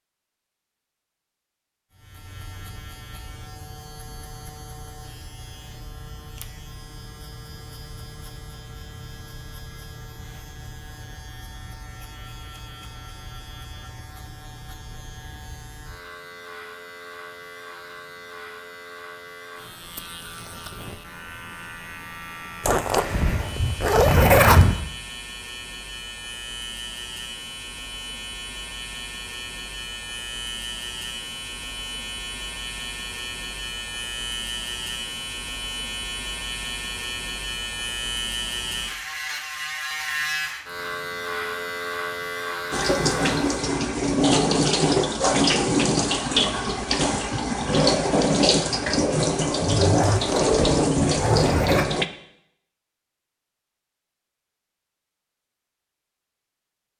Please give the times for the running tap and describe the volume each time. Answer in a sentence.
The running tap can be heard from 42.7 to 52.0 s, at a steady volume.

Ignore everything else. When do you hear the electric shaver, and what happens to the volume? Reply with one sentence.
The electric shaver can be heard from 1.9 to 43.5 s, getting louder.